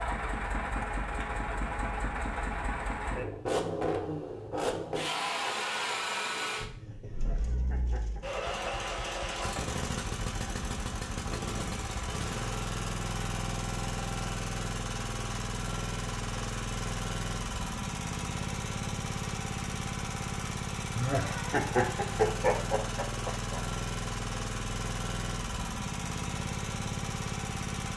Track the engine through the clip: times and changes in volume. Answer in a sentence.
The engine can be heard from 0.0 to 27.9 s, at a steady volume.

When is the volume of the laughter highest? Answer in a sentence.
The loudest moment of the laughter is at 22 seconds.